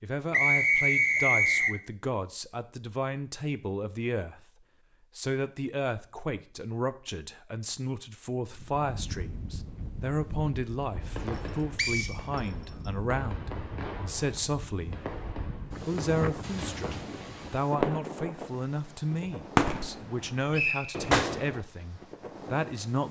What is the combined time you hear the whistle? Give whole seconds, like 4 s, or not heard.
3 s.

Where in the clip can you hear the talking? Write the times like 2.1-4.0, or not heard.
0.0-4.5, 5.2-15.0, 15.8-23.0.